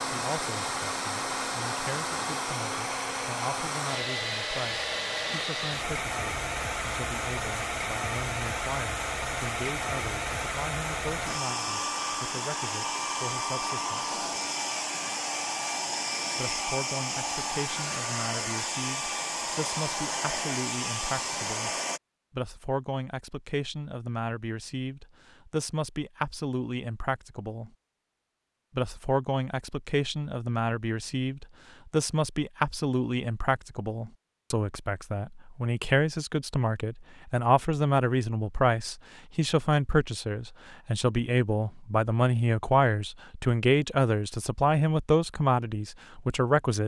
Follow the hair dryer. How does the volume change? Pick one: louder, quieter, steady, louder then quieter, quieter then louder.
steady.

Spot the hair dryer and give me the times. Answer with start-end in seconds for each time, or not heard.
0.0-22.0.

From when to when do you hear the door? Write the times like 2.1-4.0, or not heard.
not heard.